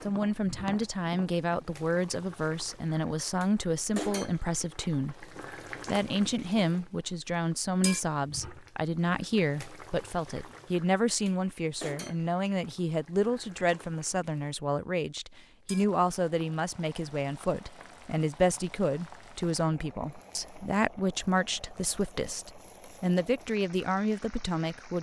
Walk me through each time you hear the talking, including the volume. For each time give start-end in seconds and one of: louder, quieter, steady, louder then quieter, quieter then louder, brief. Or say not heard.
0.0-24.9 steady.